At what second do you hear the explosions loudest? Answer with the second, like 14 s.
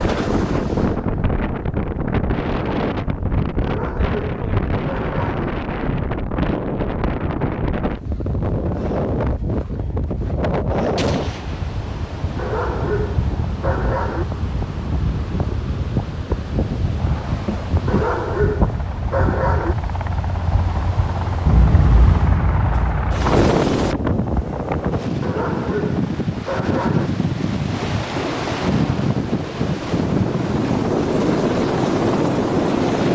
22 s.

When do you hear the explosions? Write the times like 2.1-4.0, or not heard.
10.9-11.8, 21.4-23.3.